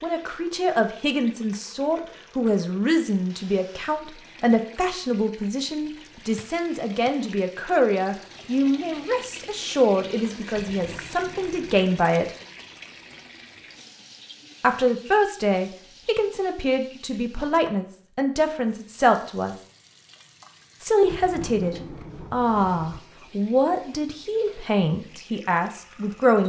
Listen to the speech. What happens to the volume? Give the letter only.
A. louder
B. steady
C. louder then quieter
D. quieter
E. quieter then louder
B.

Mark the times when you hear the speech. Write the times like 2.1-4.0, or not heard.
0.0-12.3, 14.6-19.6, 20.8-26.4.